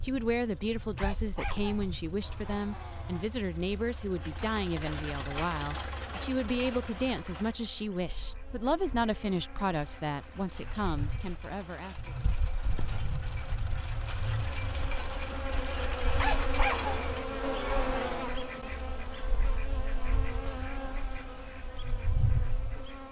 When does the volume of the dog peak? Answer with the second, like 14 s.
17 s.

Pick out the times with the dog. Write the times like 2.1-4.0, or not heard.
0.9-3.3, 16.1-18.2.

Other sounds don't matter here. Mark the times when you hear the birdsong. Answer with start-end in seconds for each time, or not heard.
not heard.